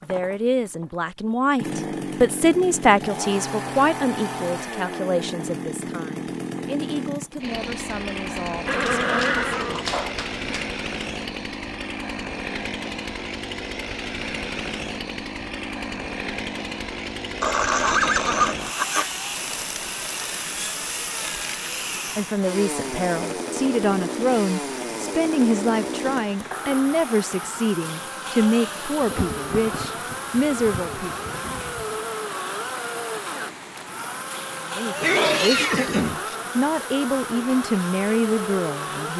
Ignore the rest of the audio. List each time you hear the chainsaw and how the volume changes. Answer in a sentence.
The chainsaw can be heard from 0.0 to 39.1 s, at a steady volume.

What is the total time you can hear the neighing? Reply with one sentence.
You can hear the neighing for 5 seconds altogether.